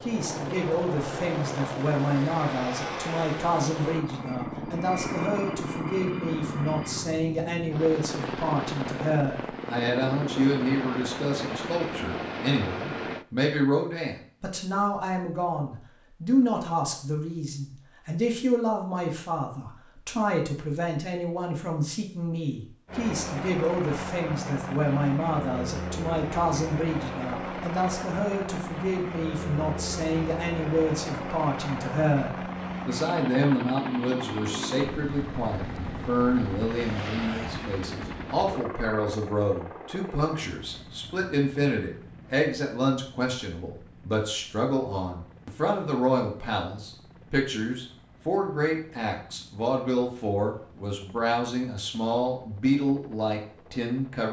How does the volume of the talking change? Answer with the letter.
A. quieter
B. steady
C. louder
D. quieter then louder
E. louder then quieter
B.